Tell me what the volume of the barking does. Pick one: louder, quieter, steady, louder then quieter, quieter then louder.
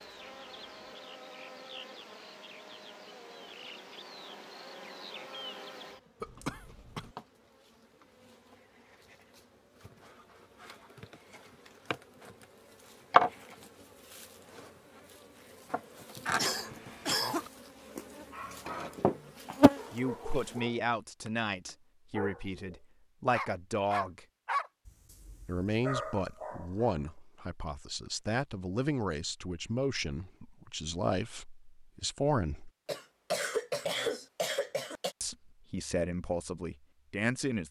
louder then quieter.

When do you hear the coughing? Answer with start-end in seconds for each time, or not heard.
6.2-7.1, 16.4-17.5, 32.9-35.1.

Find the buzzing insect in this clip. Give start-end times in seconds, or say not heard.
0.0-20.6.